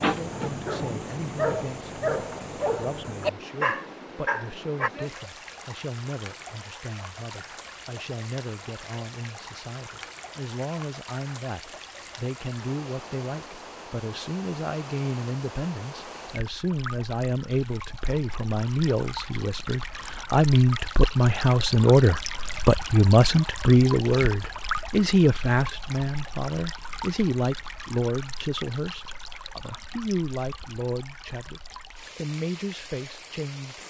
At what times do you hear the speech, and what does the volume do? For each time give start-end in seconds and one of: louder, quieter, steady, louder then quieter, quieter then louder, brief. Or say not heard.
0.0-33.8 louder then quieter.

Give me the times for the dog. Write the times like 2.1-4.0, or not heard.
0.0-4.9.